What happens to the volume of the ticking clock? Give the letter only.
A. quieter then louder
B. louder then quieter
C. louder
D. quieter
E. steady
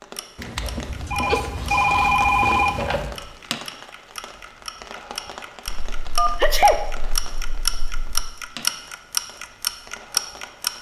C.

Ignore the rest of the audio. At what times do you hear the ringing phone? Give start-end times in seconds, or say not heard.
0.3-3.1, 5.7-8.3.